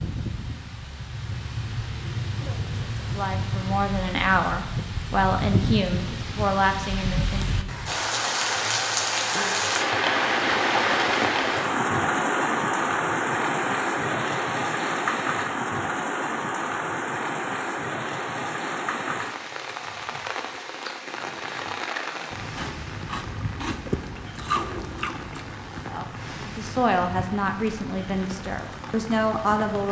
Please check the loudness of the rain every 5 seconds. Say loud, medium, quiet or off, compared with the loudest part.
medium, loud, loud, medium, medium, quiet.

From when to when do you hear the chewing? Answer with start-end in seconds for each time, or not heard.
22.6-25.4.